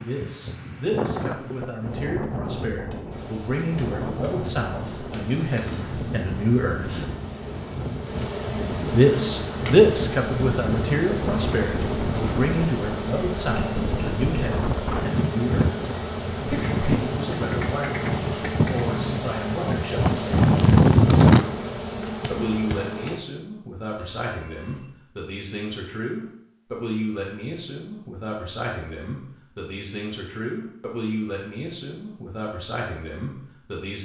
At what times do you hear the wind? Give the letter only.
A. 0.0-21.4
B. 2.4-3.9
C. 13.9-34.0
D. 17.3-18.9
A.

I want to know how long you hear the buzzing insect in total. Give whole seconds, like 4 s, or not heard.
20 s.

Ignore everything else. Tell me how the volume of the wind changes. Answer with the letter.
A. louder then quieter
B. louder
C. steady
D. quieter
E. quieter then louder
B.